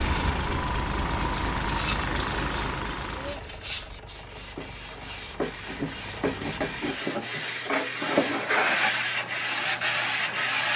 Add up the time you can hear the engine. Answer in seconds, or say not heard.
7 s.